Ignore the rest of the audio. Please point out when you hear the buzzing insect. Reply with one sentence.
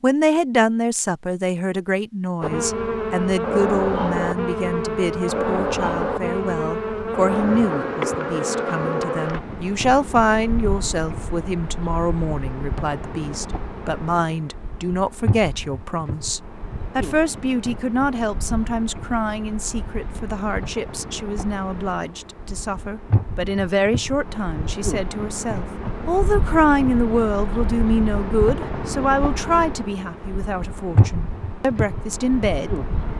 You can hear the buzzing insect from 2.4 to 33.1 s.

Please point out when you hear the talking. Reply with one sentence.
The talking can be heard from 0.0 to 33.1 s.